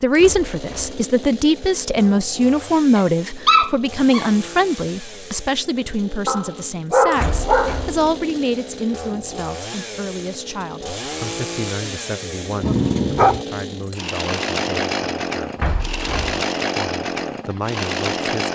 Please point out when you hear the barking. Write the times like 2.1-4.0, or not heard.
3.0-4.3, 6.2-8.1, 12.6-13.4.